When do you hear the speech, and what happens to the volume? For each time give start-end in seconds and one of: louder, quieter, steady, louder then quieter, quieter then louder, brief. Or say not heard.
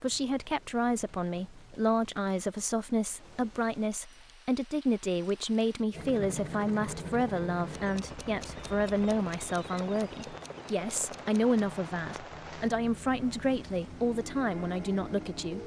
0.0-15.6 steady.